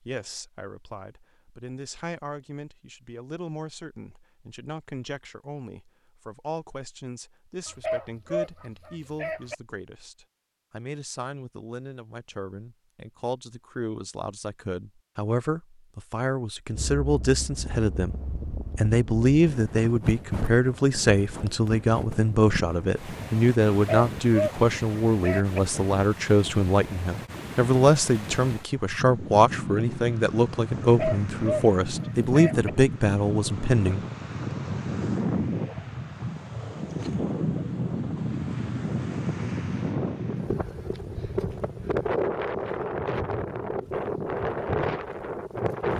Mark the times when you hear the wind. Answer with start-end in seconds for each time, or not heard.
16.7-45.9.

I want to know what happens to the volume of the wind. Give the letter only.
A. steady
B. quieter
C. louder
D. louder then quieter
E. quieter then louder
C.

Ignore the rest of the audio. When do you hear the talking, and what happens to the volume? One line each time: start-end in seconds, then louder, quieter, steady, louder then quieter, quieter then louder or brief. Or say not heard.
0.0-18.1 louder
18.8-34.0 steady.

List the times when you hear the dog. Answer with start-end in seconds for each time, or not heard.
7.7-9.6, 23.7-25.6, 30.8-32.7.